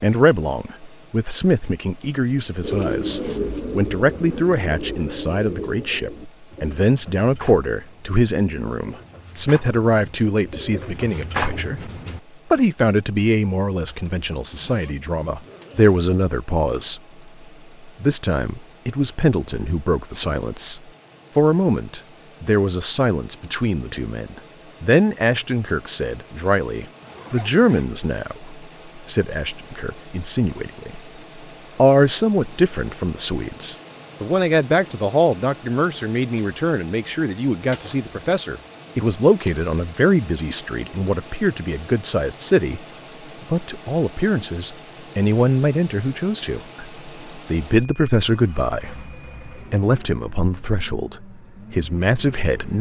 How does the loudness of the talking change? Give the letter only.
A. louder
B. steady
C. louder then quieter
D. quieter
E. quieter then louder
B.